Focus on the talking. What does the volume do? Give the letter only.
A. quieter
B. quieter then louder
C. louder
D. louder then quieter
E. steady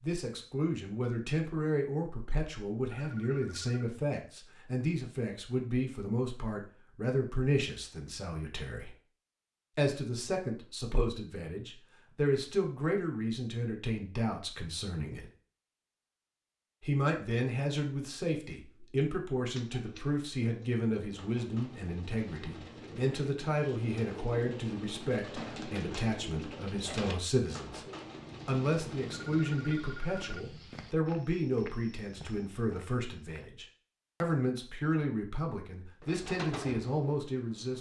E.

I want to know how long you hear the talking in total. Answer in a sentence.
You can hear the talking for 35 seconds altogether.